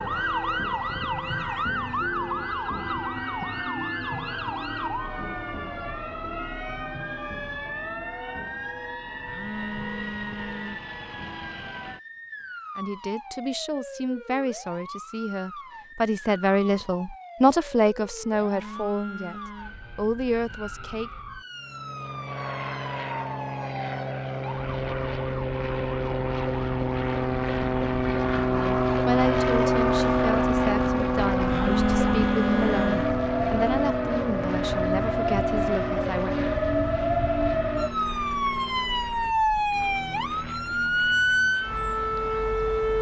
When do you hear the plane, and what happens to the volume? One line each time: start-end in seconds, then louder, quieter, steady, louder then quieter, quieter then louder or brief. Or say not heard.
21.5-42.7 louder then quieter.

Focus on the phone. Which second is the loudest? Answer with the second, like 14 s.
32 s.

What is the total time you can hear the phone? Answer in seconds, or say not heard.
5 s.